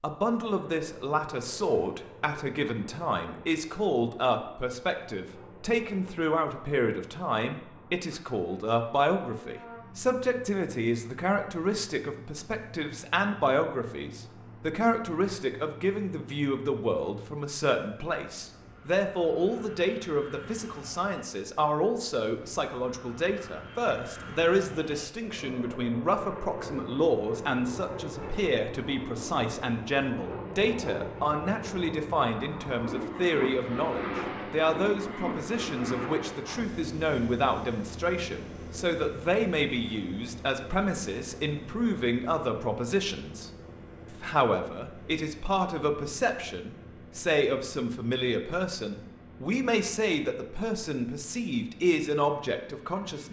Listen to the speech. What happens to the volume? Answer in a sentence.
The loudness of the speech stays about the same.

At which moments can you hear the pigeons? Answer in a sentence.
You can't hear the pigeons here.